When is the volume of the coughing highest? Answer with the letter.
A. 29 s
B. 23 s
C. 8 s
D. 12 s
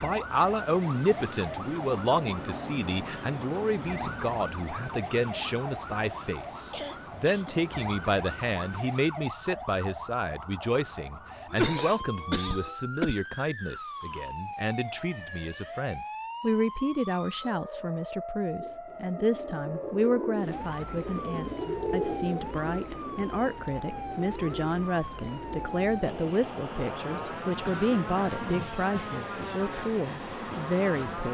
D.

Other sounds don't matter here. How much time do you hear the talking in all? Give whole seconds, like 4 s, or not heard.
31 s.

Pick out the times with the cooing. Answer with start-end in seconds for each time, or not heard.
18.6-25.9.